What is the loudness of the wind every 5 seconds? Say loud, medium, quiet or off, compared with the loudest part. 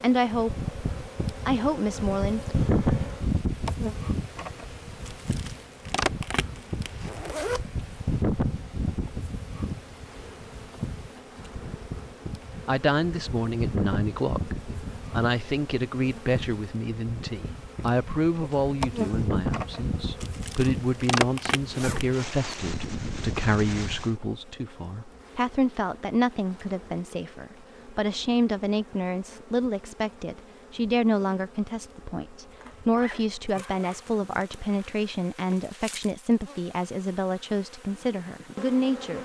loud, loud, medium, medium, medium, off, off, off.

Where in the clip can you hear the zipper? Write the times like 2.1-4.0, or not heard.
7.0-7.7, 21.7-22.1, 32.6-34.9.